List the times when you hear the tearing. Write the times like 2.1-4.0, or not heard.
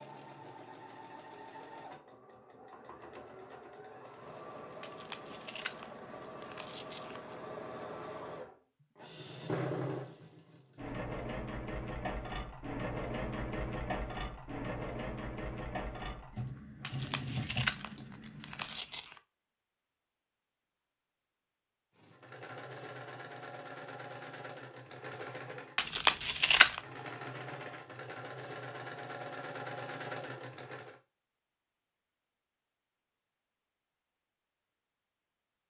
4.8-7.3, 16.8-19.2, 25.8-26.8.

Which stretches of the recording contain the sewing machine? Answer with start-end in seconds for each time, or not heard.
0.0-18.8, 21.9-31.0.